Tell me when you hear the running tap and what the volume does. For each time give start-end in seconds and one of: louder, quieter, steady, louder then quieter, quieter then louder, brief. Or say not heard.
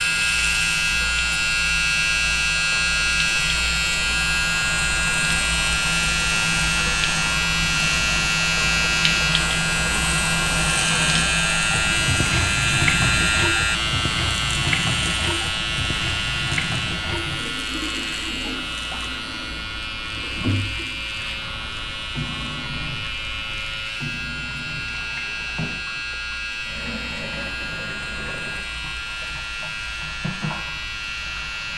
0.0-31.7 louder then quieter.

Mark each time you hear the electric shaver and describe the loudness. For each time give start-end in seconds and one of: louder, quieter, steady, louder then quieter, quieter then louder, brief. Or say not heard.
0.0-31.7 quieter.